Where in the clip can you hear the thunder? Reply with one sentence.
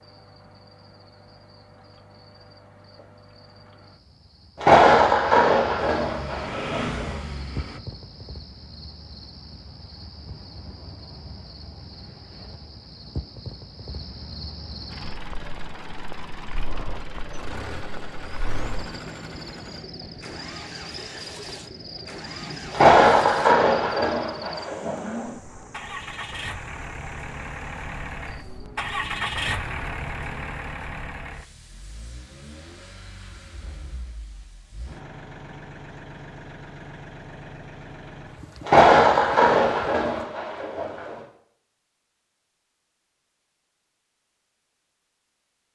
The thunder can be heard from 4.6 to 7.1 s, from 22.7 to 25.2 s and from 38.6 to 41.2 s.